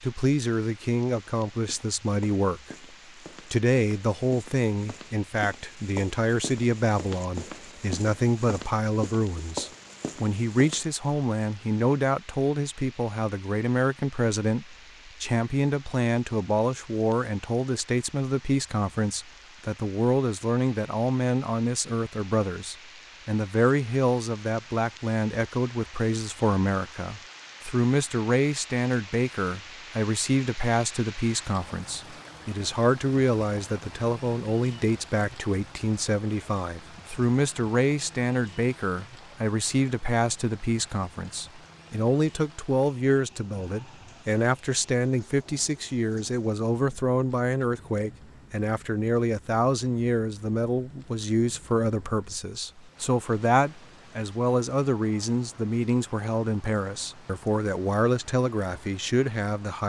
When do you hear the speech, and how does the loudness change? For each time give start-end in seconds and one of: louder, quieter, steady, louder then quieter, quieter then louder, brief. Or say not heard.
0.0-2.8 brief
3.5-59.8 steady.